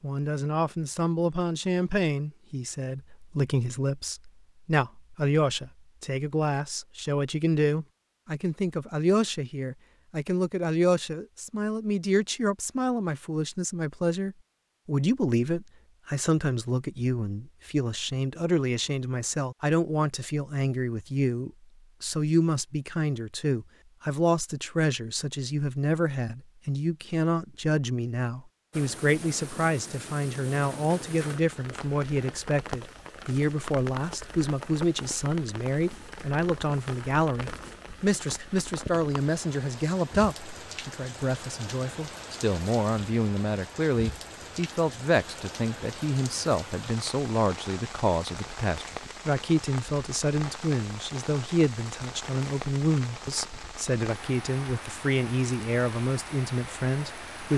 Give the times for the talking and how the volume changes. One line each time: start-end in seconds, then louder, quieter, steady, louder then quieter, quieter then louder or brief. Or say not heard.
0.0-57.5 steady.